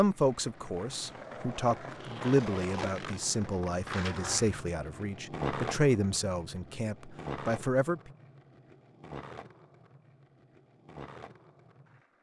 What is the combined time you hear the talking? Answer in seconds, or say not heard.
8 s.